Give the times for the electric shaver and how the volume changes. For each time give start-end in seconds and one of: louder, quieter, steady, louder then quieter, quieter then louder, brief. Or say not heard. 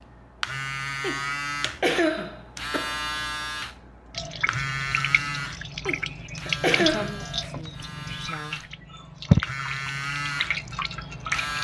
0.0-11.5 quieter then louder.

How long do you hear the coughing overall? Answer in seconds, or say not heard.
3 s.